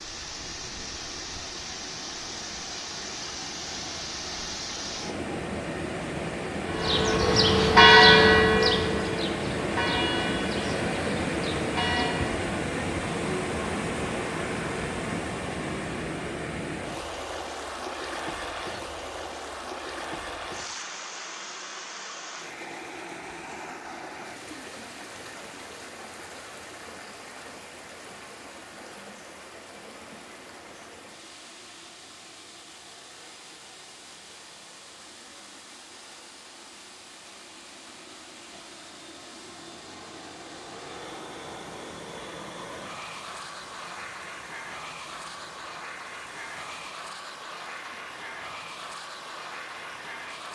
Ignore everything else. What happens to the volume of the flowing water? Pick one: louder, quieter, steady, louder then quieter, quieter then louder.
quieter.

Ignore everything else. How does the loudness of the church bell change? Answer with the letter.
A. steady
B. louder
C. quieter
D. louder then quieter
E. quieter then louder
C.